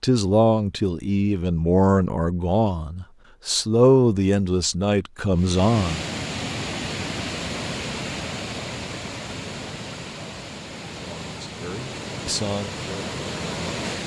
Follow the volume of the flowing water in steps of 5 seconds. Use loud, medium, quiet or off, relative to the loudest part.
off, loud, loud.